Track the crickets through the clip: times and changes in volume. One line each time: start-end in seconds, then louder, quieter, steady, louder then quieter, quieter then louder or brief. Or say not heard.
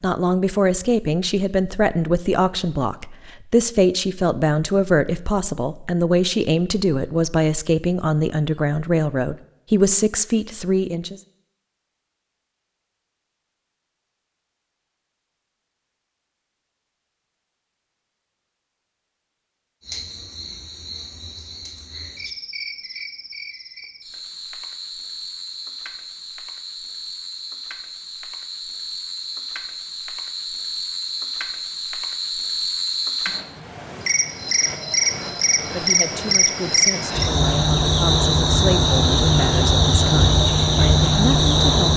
19.8-41.9 louder.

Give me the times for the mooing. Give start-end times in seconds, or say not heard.
not heard.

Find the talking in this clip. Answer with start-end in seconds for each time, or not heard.
0.0-11.2, 35.6-41.9.